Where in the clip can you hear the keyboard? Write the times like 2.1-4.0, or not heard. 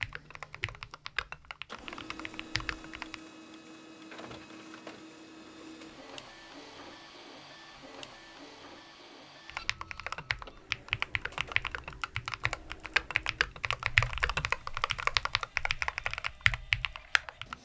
0.0-3.2, 9.4-17.5.